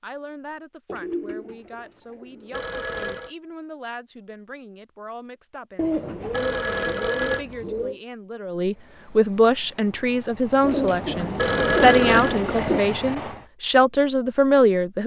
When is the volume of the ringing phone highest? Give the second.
12 s.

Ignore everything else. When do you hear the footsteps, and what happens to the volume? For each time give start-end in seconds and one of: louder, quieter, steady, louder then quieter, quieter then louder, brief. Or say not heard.
not heard.